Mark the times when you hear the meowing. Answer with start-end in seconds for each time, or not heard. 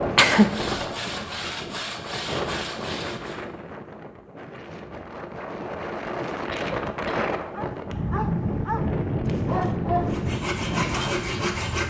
not heard.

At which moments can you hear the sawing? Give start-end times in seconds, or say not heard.
0.0-3.5, 10.1-11.8.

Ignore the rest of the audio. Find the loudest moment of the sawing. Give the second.
11 s.